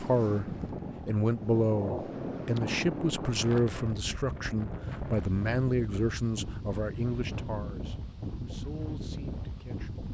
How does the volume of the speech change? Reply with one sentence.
The loudness of the speech goes down.